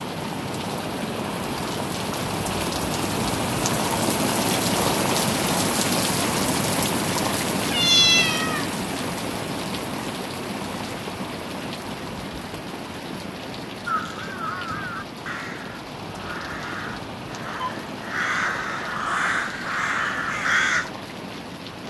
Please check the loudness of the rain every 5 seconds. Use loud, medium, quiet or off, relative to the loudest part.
loud, loud, medium, medium, medium.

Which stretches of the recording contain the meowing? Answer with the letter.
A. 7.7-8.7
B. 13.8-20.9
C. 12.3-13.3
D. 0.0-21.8
A.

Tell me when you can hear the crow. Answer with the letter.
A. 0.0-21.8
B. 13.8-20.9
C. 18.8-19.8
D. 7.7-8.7
B.